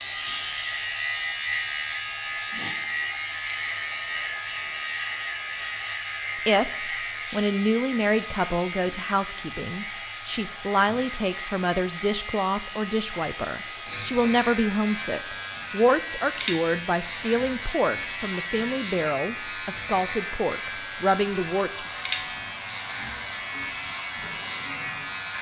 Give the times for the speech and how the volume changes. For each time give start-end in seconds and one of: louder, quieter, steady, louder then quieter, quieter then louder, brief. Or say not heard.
6.5-21.8 steady.